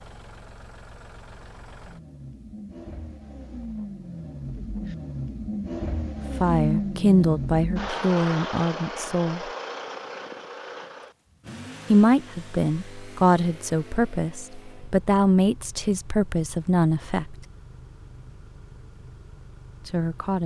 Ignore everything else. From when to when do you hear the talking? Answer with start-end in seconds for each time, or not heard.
6.4-9.4, 11.9-17.4, 19.9-20.4.